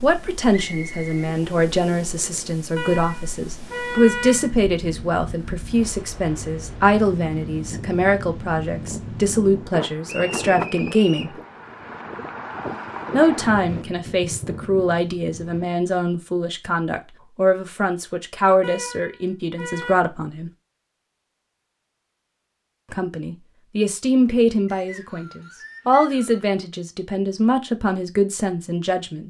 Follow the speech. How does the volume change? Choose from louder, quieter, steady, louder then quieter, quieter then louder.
steady.